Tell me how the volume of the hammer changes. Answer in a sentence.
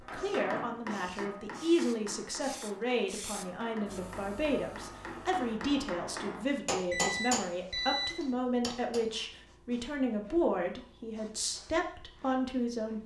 The volume of the hammer goes down, then up.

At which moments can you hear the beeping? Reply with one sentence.
The beeping can be heard from 6.9 to 8.3 s.